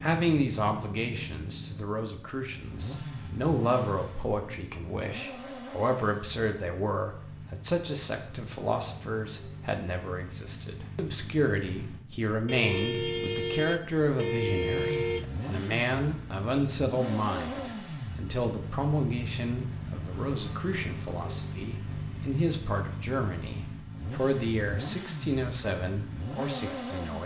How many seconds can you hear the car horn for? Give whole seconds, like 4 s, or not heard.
3 s.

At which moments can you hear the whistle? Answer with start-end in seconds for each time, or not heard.
not heard.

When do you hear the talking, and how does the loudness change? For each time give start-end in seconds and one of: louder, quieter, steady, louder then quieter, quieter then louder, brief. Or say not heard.
0.0-27.2 steady.